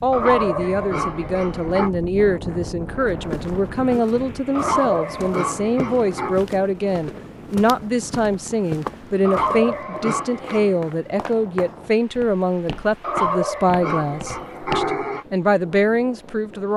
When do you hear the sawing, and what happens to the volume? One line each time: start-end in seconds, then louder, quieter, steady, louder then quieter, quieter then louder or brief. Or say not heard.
not heard.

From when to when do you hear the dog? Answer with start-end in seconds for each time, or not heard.
0.1-1.9, 4.5-6.4, 9.2-10.9, 13.0-15.2.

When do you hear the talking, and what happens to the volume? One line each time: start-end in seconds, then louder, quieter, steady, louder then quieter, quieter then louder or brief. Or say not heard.
0.0-16.7 steady.